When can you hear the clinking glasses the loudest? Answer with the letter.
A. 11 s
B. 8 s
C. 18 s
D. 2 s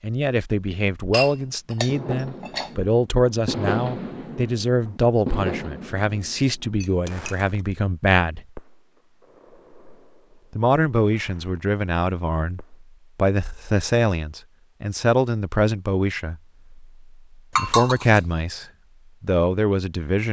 C.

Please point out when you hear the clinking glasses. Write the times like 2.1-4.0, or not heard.
1.1-2.7, 6.8-7.5, 17.6-18.2.